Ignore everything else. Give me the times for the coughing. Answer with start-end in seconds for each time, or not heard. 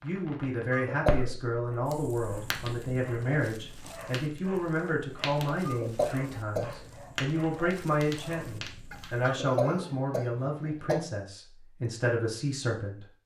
0.7-1.3, 5.7-6.8, 9.2-11.0.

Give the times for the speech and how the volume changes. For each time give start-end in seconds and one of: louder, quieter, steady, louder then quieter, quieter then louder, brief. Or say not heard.
0.0-13.1 steady.